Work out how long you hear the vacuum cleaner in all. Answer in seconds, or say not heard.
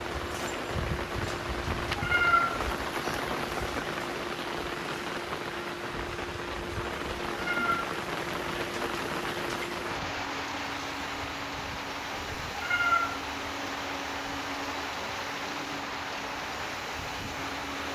18 s.